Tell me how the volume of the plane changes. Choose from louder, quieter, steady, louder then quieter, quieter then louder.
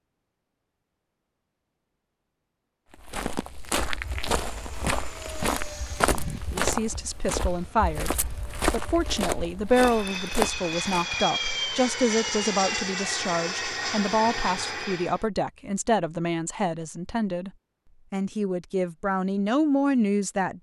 quieter then louder.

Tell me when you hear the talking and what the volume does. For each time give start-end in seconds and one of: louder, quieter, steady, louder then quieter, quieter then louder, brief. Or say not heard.
6.5-17.5 steady
18.1-20.5 brief.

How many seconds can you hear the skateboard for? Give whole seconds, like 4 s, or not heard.
not heard.